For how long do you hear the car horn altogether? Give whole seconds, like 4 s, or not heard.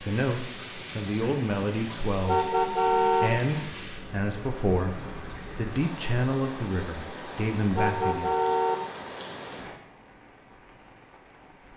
2 s.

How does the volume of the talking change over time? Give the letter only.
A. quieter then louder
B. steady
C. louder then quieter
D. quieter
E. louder
B.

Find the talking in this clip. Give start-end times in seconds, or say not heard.
0.0-8.4.